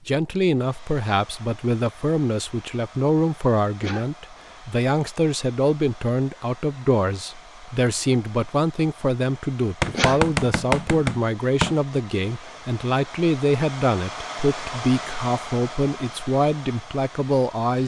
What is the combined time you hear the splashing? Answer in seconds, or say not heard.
not heard.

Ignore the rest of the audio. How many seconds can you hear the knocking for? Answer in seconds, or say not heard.
2 s.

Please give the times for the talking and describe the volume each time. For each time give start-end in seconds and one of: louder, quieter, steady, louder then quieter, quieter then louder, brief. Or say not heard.
0.1-17.8 steady.